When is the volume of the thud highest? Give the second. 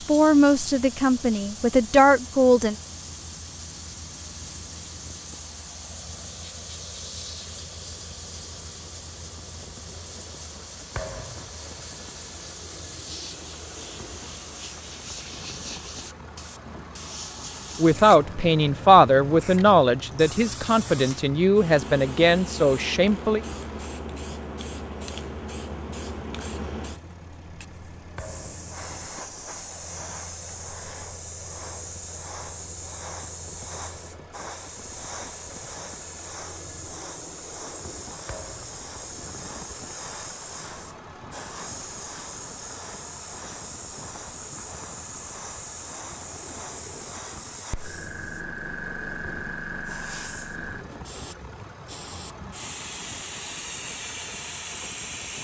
11 s.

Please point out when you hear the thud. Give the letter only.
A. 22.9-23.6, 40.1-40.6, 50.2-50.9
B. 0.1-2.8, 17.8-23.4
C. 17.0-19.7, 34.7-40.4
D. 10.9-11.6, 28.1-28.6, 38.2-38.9
D.